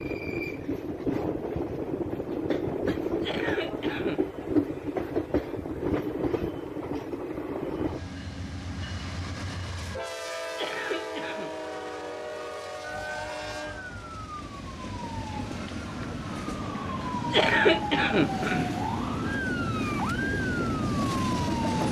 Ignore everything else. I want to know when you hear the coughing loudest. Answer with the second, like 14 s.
18 s.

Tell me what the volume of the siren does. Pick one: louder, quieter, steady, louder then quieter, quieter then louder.
louder.